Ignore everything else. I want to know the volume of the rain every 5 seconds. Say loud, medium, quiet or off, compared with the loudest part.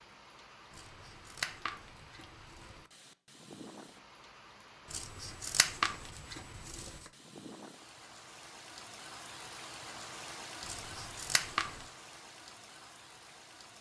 medium, loud, loud.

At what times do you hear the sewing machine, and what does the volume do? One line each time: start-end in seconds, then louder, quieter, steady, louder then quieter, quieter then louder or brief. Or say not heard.
not heard.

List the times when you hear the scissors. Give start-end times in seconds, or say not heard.
0.7-2.8, 4.9-7.1, 10.7-11.8.